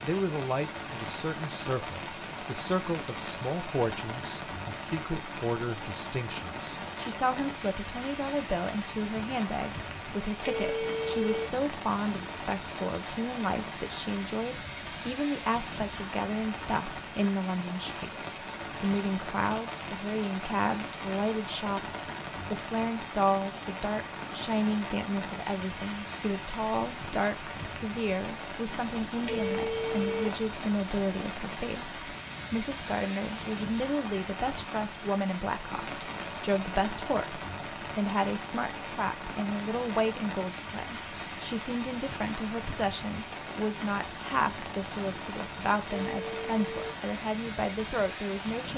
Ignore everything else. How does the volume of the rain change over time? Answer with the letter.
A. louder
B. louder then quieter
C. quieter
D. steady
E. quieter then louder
D.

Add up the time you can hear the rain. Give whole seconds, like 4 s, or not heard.
49 s.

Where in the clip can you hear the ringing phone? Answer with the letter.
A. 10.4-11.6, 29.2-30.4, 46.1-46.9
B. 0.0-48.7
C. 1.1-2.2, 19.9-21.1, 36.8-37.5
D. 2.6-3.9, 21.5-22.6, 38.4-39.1
A.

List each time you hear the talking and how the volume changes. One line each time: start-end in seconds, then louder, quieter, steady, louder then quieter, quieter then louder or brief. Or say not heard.
0.0-48.7 steady.